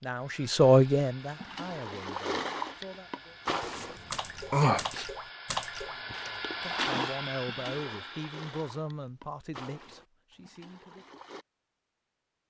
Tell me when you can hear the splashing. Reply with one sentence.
The splashing can be heard from 1.2 to 11.4 s.